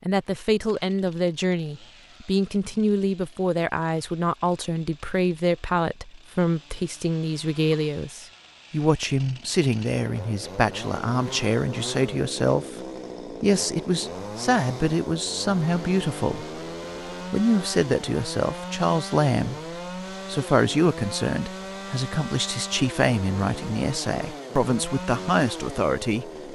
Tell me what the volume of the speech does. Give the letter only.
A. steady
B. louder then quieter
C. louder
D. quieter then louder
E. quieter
A.